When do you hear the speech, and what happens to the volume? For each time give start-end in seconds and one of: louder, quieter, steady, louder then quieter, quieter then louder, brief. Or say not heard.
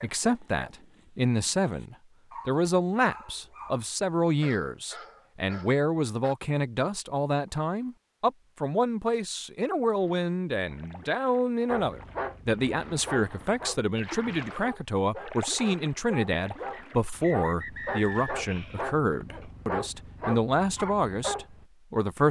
0.0-22.2 steady.